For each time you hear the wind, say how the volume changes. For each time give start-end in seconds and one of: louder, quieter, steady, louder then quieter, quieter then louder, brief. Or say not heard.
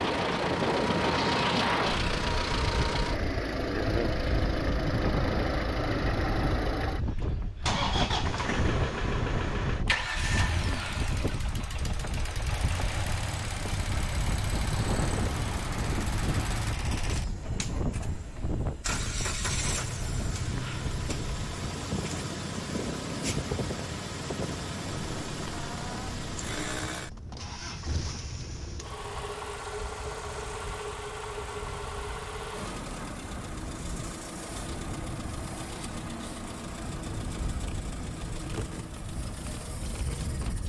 0.0-40.6 quieter.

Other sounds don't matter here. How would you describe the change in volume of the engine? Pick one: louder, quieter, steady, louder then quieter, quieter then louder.
quieter.